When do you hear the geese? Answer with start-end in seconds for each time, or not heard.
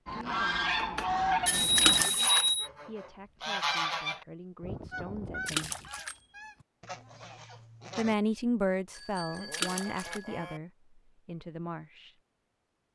0.1-8.2.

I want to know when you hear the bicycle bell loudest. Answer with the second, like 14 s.
2 s.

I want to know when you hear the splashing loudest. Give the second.
2 s.